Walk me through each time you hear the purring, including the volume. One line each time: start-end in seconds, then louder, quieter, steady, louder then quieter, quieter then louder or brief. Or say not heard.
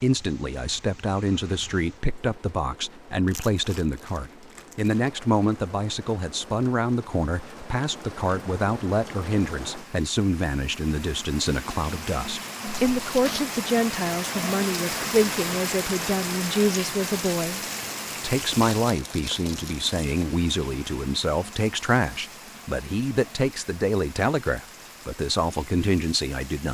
not heard.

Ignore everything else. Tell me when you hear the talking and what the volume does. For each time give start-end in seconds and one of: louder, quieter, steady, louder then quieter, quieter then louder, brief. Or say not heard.
0.0-17.6 steady
18.2-26.6 steady.